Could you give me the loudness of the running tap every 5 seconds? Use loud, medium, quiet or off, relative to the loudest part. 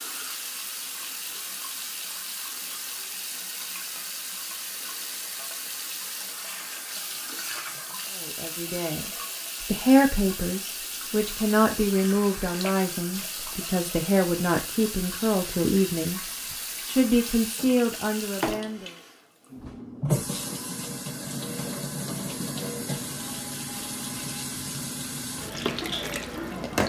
medium, medium, medium, medium, loud, loud.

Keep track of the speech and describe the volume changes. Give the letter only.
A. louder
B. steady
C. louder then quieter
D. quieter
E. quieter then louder
B.